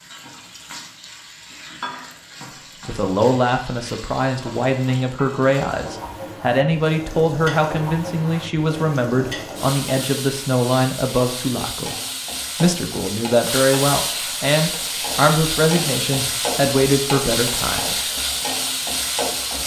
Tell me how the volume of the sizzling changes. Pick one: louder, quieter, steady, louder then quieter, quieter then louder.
louder.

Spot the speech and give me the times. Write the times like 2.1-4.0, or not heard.
2.9-11.9, 12.6-18.1.